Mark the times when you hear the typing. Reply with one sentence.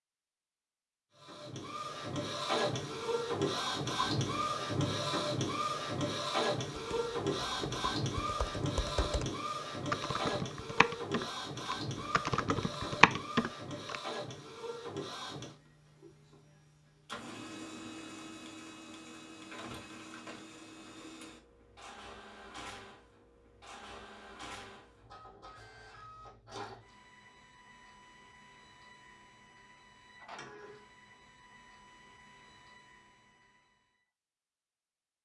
The typing can be heard from 6.8 to 13.9 s.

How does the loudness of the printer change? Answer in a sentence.
The loudness of the printer goes down.